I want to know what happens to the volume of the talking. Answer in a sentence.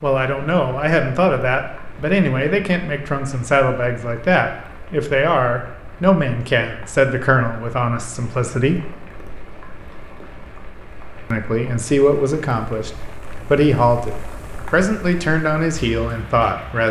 The loudness of the talking stays about the same.